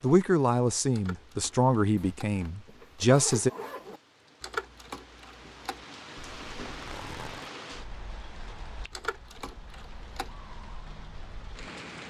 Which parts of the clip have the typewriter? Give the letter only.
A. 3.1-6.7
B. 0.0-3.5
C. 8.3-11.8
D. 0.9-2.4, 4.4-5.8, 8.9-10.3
D.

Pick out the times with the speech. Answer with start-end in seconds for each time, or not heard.
0.0-3.5.